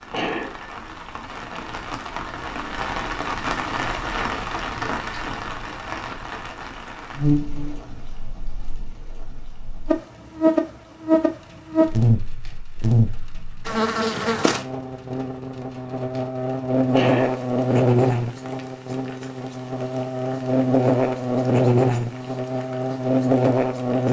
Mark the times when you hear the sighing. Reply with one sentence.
You can hear the sighing from 0.1 to 0.6 s and from 16.9 to 17.4 s.